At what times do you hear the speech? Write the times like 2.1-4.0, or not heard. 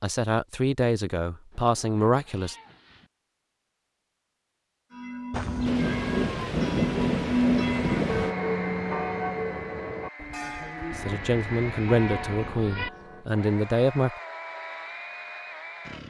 0.0-2.5, 10.9-14.2.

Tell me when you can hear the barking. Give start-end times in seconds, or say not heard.
not heard.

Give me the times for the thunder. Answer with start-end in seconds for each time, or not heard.
5.3-8.3.